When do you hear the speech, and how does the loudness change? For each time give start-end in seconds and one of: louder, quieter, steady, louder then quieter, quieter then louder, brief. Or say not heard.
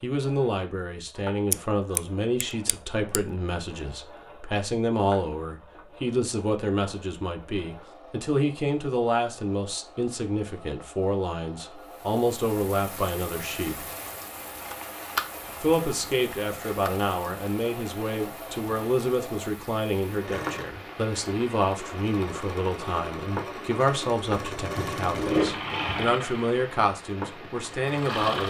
0.0-13.8 steady
15.6-28.4 steady.